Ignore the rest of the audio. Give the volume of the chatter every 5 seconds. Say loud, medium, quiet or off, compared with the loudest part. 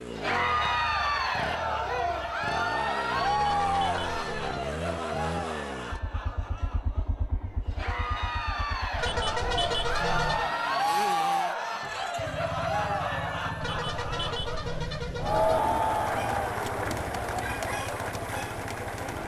loud, medium, loud, loud.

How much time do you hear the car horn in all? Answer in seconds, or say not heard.
5 s.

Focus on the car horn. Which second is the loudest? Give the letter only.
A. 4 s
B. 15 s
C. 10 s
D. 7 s
C.